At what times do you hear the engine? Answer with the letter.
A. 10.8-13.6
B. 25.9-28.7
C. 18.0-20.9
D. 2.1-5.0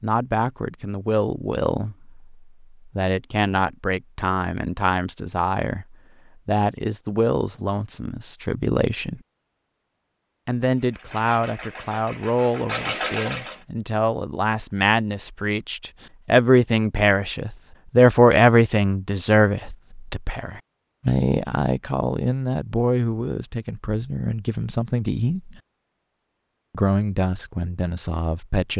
A.